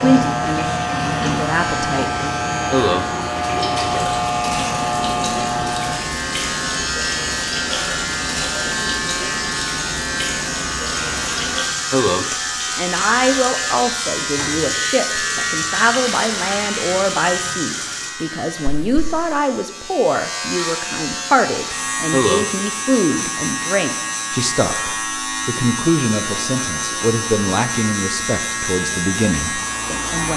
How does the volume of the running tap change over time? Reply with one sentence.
The loudness of the running tap stays about the same.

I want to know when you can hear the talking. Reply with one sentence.
The talking can be heard from 0.0 to 2.3 s and from 12.1 to 30.3 s.